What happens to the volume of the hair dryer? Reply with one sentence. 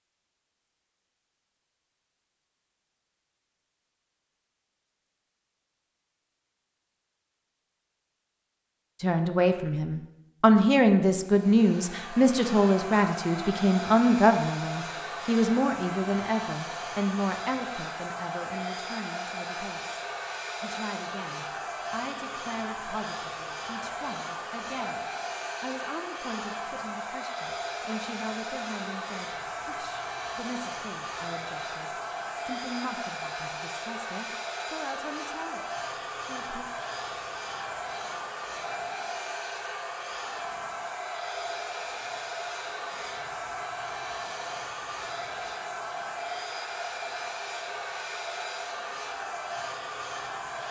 The loudness of the hair dryer stays about the same.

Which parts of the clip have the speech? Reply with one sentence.
You can hear the speech from 9.0 to 36.6 s.